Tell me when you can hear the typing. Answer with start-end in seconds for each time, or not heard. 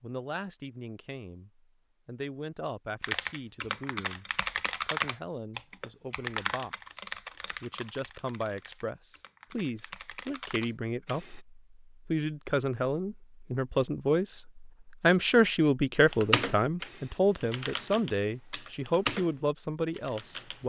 3.0-11.4, 16.1-20.6.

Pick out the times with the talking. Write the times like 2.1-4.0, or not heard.
0.0-20.6.